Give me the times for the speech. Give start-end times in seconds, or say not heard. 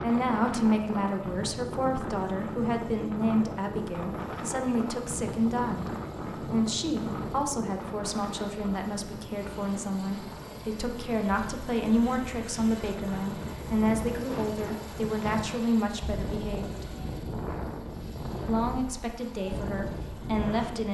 0.0-16.9, 18.4-20.8.